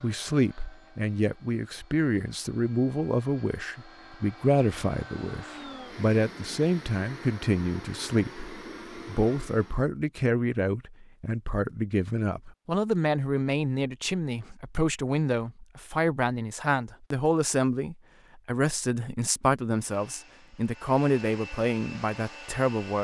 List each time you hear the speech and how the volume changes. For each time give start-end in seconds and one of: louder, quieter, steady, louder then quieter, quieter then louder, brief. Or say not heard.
0.0-22.9 steady.